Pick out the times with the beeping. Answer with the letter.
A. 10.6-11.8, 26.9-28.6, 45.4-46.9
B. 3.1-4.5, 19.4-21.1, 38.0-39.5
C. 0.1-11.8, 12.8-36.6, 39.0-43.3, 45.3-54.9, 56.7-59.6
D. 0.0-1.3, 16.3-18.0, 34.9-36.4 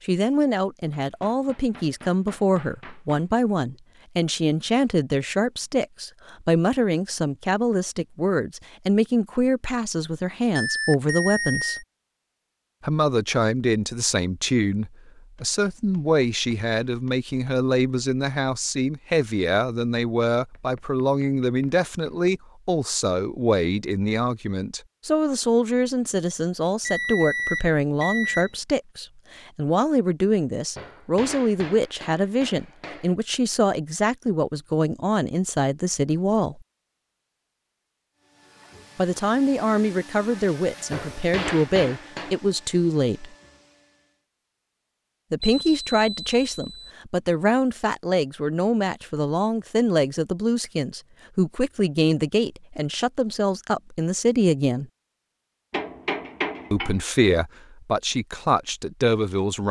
A.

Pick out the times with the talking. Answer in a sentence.
You can hear the talking from 0.1 to 11.8 s, from 12.8 to 36.6 s, from 39.0 to 43.3 s, from 45.3 to 54.9 s and from 56.7 to 59.6 s.